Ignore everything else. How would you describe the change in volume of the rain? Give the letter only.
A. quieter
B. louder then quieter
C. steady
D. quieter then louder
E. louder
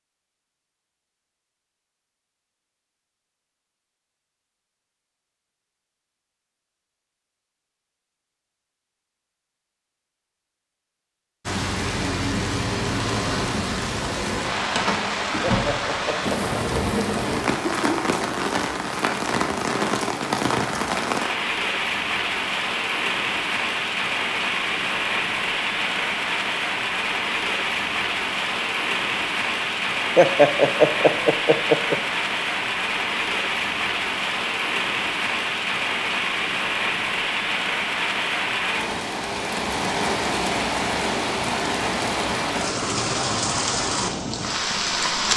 C.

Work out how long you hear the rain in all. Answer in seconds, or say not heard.
34 s.